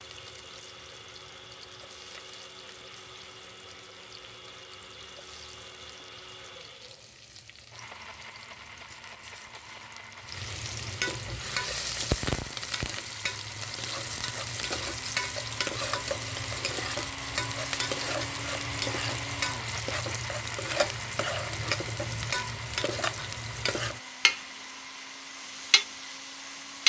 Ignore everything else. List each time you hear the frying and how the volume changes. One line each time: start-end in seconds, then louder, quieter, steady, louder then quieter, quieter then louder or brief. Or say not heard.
0.0-26.8 louder.